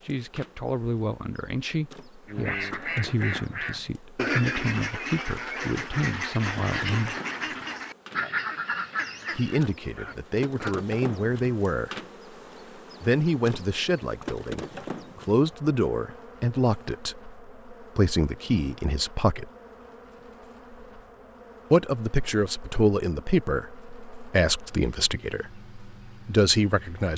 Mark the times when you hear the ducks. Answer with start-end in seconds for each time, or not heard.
2.2-10.8.